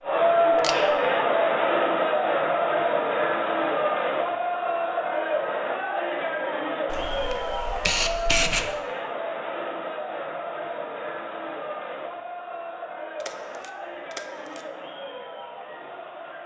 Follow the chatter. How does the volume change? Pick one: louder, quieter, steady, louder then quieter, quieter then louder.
quieter.